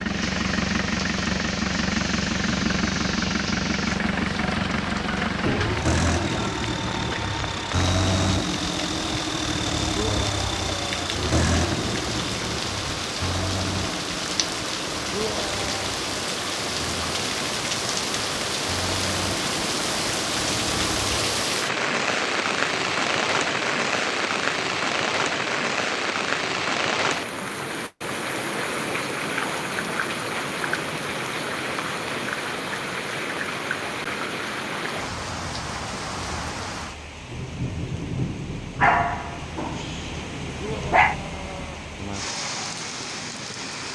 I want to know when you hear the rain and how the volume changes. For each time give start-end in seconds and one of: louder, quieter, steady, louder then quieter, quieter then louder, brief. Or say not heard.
0.0-43.8 louder then quieter.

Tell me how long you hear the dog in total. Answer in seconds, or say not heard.
2 s.